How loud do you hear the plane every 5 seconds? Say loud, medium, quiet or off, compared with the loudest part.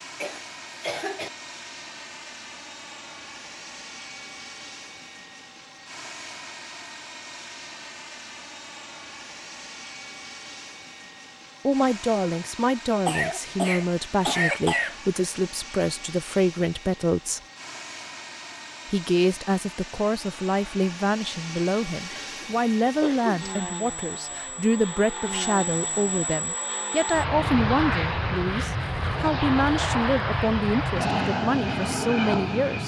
quiet, quiet, quiet, quiet, medium, loud, loud.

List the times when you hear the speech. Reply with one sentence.
You can hear the speech from 11.7 to 17.4 s and from 18.9 to 32.8 s.